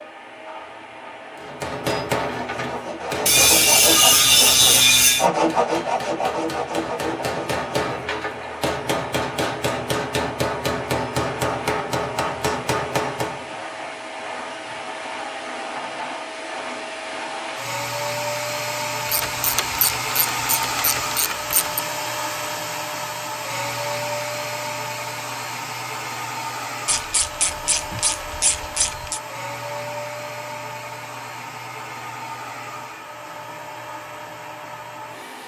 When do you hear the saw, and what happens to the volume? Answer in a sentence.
You can hear the saw from 2.5 to 8.1 s, getting louder then quieter.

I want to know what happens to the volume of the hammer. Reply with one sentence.
The loudness of the hammer goes down, then up.